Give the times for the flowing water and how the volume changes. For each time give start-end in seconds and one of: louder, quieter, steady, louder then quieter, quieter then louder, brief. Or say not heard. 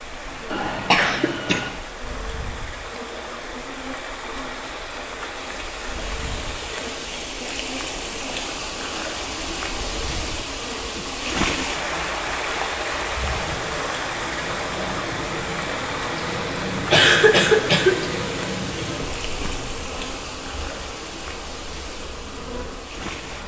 0.0-23.4 louder then quieter.